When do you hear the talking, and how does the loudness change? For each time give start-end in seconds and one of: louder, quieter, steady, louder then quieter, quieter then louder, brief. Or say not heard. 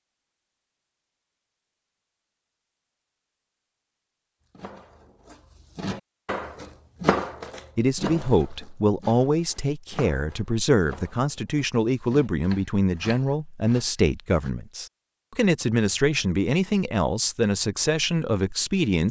7.8-19.0 steady.